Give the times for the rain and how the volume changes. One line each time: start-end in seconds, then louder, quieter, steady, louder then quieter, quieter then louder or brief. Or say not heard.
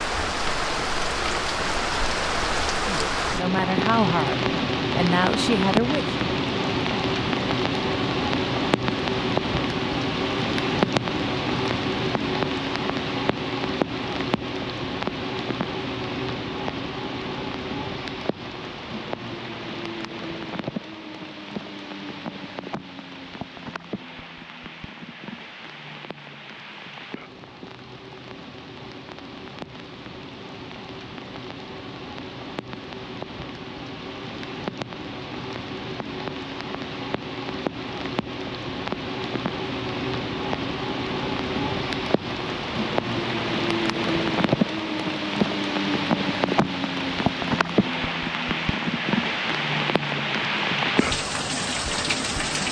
0.0-52.6 quieter then louder.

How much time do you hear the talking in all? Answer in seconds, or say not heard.
3 s.